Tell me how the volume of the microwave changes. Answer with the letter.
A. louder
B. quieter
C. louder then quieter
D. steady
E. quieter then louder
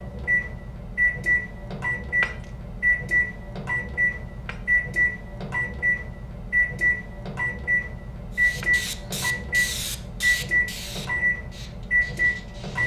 D.